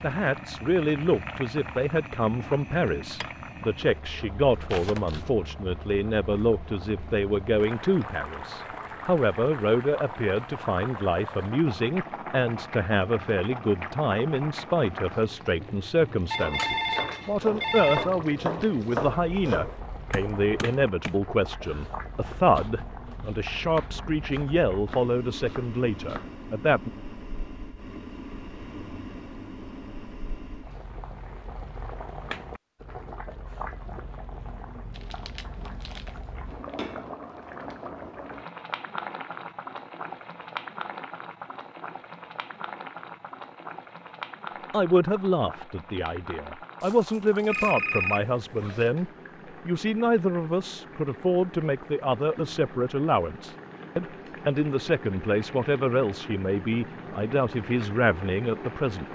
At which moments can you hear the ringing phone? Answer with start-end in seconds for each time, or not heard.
16.3-18.1, 47.5-48.9.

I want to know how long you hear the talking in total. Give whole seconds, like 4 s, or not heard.
41 s.